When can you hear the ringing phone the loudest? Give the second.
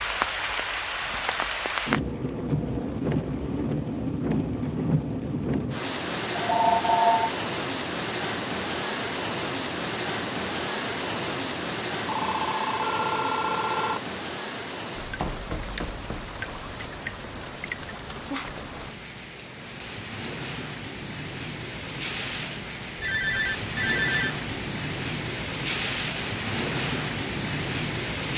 7 s.